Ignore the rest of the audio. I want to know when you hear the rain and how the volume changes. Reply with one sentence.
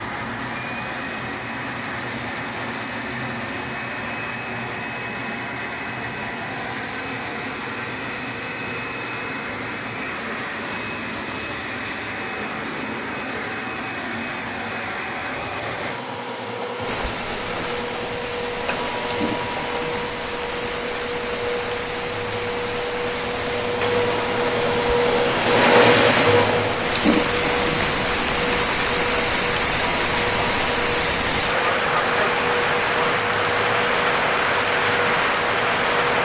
You can hear the rain from 16.8 to 36.1 s, getting louder.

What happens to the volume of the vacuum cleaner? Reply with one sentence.
The loudness of the vacuum cleaner goes up, then down.